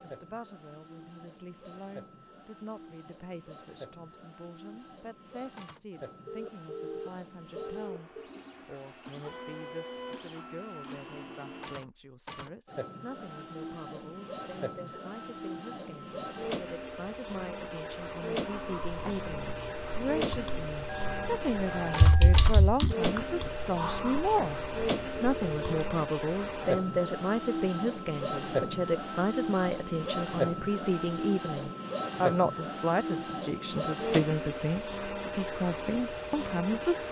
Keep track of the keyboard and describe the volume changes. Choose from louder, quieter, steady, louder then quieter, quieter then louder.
louder then quieter.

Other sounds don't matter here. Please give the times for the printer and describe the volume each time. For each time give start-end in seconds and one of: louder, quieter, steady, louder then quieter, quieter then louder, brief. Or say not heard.
0.0-37.0 louder.